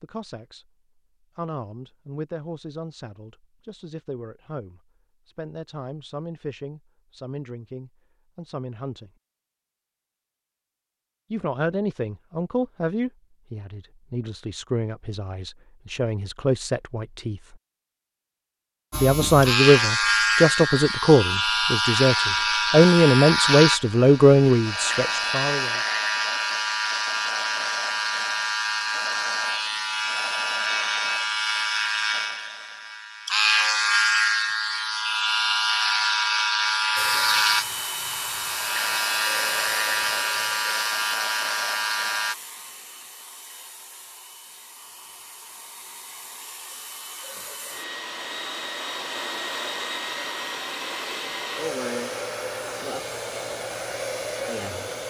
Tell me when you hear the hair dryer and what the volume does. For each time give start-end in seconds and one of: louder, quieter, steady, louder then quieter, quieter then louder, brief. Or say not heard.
37.0-55.0 quieter then louder.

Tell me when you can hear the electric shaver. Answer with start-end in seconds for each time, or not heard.
18.9-42.4.